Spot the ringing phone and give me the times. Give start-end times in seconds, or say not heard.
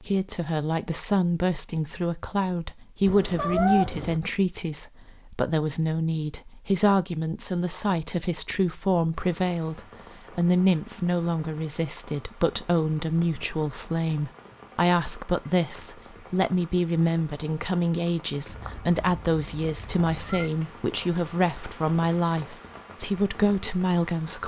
not heard.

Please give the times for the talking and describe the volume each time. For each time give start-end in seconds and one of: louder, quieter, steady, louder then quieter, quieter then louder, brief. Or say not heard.
0.0-24.4 steady.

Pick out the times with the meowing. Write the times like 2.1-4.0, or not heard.
3.0-4.2, 18.4-20.5.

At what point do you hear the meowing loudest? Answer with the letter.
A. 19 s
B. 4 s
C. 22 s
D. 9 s
B.